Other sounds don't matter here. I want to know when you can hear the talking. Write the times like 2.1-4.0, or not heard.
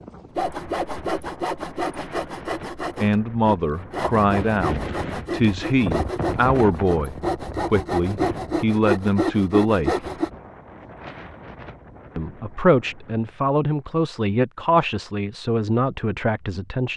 3.0-9.9, 12.2-16.9.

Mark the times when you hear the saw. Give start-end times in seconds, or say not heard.
0.3-10.3.